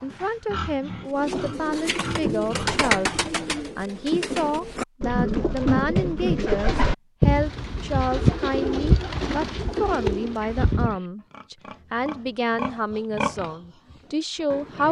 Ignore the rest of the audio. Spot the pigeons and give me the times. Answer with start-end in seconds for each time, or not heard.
1.1-10.9.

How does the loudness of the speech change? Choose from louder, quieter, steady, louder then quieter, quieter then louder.
steady.